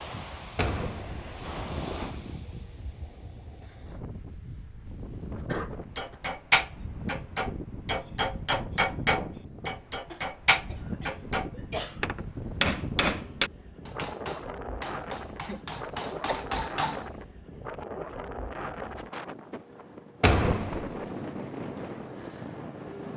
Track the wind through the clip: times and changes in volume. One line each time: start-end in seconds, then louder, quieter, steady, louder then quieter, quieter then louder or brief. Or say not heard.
0.0-23.1 steady.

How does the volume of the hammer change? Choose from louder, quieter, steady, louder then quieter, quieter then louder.
quieter.